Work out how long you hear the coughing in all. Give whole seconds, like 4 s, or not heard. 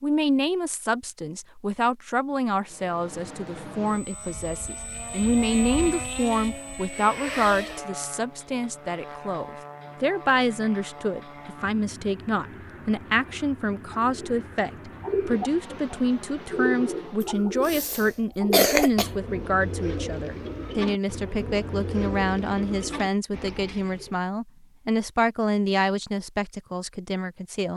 2 s.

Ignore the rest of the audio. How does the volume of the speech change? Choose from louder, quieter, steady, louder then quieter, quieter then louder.
steady.